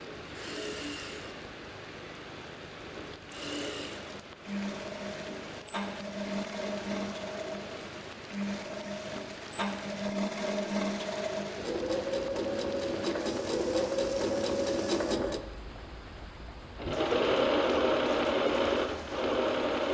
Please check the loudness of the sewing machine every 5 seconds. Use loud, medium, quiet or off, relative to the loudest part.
medium, medium, loud, loud.